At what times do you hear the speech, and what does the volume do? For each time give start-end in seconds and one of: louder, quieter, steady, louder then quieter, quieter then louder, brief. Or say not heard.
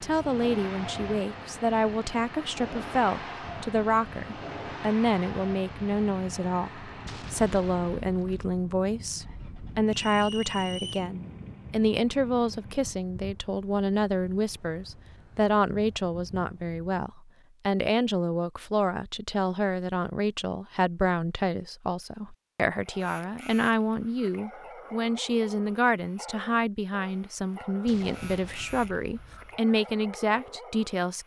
0.0-31.2 steady.